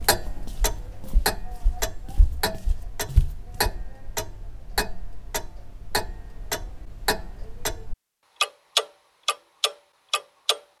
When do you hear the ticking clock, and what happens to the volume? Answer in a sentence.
The ticking clock can be heard from 0.0 to 10.6 s, getting louder.